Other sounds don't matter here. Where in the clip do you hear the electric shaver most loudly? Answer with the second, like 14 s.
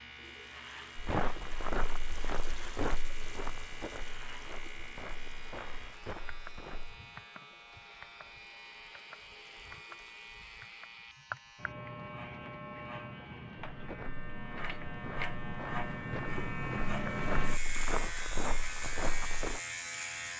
17 s.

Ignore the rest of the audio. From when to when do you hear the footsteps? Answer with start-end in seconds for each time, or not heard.
0.9-7.0, 13.7-19.6.